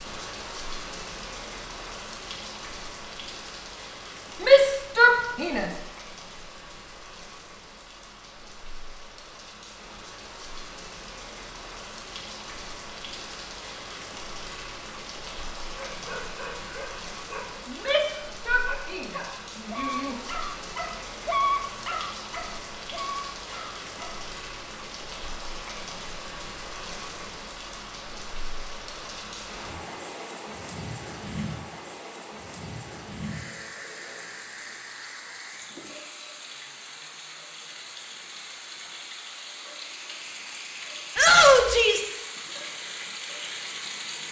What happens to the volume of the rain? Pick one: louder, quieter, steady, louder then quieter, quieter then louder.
steady.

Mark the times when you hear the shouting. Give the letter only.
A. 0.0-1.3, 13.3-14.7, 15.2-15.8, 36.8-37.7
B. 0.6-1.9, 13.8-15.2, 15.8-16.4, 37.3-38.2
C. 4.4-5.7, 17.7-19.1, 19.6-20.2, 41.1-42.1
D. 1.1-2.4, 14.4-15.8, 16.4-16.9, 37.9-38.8
C.